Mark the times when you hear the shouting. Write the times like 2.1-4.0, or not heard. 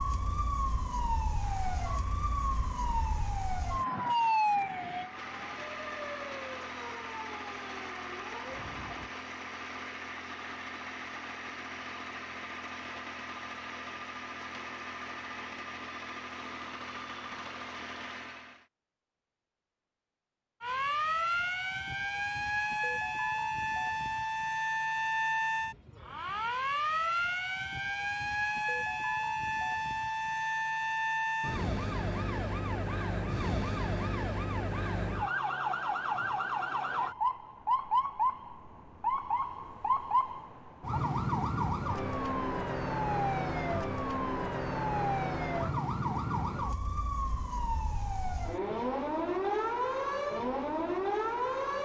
not heard.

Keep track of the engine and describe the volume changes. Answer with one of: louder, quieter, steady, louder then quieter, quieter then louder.
louder.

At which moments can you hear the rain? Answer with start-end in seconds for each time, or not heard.
not heard.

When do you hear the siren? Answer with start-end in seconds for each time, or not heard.
0.0-9.1, 20.6-51.7.